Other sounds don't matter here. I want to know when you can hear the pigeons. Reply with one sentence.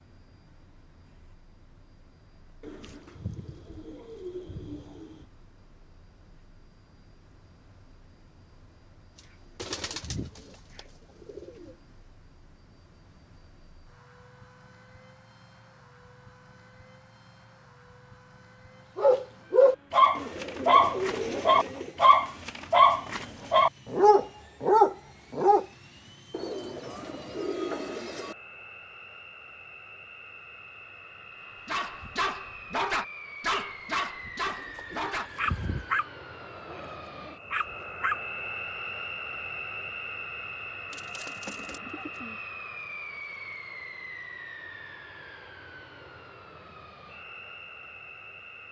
The pigeons can be heard from 2.6 to 5.2 s, from 9.2 to 11.8 s, from 20.1 to 22.0 s, from 26.3 to 28.4 s, from 34.5 to 35.9 s and from 40.9 to 42.4 s.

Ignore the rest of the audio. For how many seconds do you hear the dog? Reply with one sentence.
The dog can be heard for 13 seconds in total.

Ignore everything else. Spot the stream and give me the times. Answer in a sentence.
The stream can't be heard in this clip.